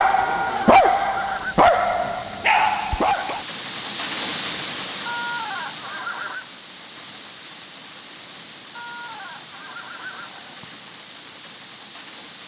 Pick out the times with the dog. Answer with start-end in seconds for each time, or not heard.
0.0-3.5.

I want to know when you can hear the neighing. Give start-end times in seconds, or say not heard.
0.1-1.6, 5.0-6.5, 8.8-10.4.